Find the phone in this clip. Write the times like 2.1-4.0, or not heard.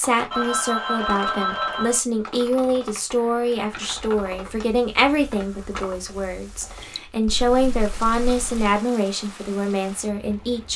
0.3-2.0, 7.2-8.7.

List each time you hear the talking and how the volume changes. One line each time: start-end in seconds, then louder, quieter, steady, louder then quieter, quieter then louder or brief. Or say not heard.
0.0-10.7 steady.